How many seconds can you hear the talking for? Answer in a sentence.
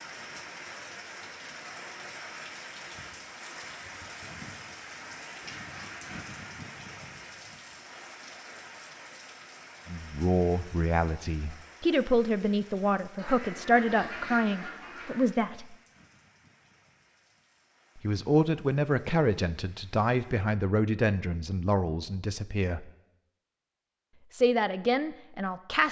The talking can be heard for 12 seconds in total.